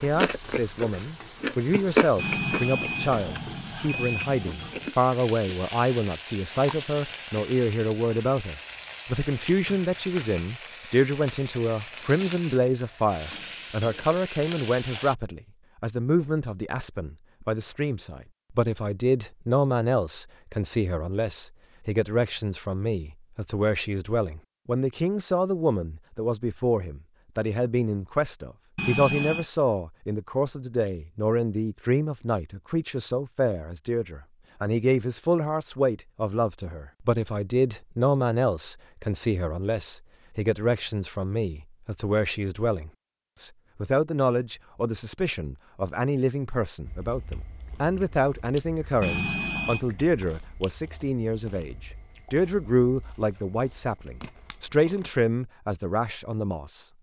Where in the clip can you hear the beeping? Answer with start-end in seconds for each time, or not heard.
2.1-5.0, 28.8-29.4, 49.0-49.8.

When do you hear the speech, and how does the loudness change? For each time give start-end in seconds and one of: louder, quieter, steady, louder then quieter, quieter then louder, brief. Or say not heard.
0.0-56.9 steady.